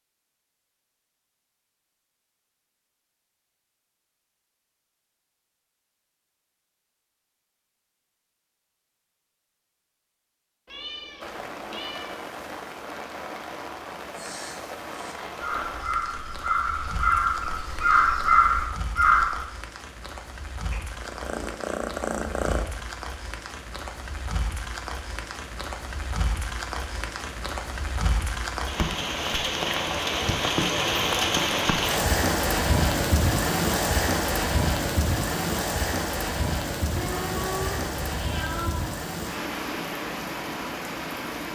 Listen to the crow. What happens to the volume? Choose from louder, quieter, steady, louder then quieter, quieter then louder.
louder.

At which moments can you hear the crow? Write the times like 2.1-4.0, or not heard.
13.9-19.4.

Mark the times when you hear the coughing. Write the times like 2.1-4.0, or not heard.
not heard.